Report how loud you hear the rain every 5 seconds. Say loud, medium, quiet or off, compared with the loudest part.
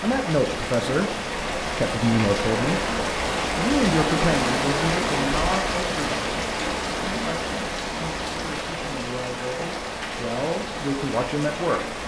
loud, loud, medium.